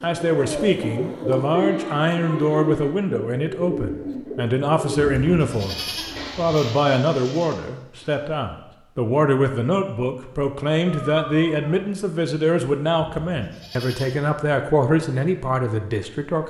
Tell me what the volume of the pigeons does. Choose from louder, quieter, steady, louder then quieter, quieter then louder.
quieter.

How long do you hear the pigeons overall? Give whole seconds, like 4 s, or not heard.
8 s.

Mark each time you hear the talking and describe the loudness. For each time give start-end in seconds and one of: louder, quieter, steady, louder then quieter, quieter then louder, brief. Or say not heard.
0.0-16.4 steady.